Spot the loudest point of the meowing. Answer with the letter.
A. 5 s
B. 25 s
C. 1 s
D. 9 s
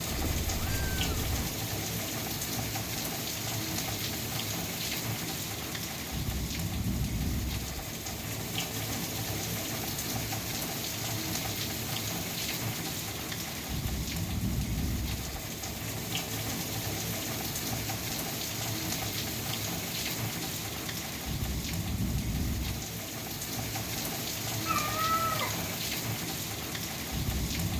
B.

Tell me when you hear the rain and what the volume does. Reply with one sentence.
The rain can be heard from 0.0 to 27.7 s, at a steady volume.